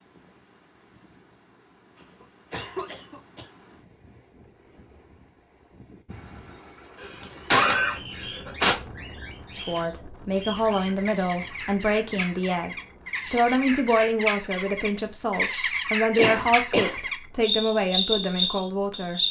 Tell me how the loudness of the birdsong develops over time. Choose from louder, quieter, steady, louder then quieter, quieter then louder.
louder.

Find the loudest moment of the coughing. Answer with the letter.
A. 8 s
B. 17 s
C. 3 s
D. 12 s
A.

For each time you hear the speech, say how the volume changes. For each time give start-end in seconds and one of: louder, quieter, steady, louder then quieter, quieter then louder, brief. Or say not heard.
9.7-19.2 steady.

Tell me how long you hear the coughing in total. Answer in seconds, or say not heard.
4 s.